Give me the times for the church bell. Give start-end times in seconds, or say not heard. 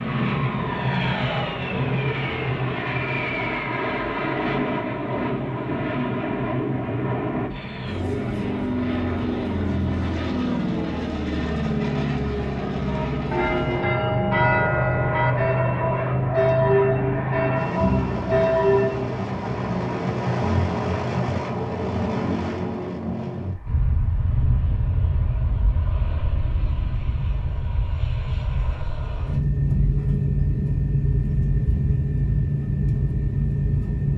12.8-19.1.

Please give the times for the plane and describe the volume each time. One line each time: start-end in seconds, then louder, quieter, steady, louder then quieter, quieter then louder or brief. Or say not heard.
0.0-34.1 steady.